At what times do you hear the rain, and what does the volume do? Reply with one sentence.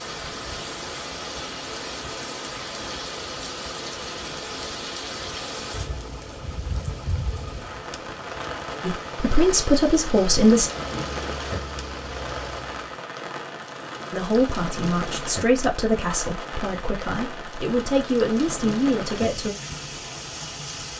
The rain can be heard from 0.0 to 20.9 s, at a steady volume.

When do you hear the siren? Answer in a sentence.
You can't hear the siren here.